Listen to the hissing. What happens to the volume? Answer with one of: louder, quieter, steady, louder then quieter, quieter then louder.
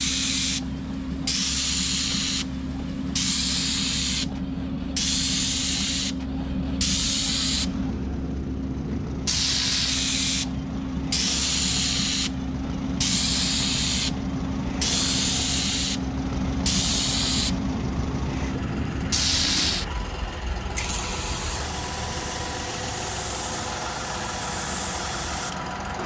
quieter.